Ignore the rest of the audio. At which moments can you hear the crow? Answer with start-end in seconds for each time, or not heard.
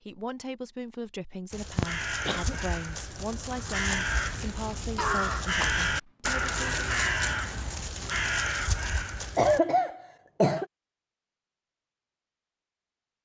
1.5-9.6.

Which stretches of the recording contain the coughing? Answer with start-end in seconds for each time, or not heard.
1.8-2.5, 5.0-6.5, 9.3-10.7.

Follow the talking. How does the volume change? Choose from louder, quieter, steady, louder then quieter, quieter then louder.
steady.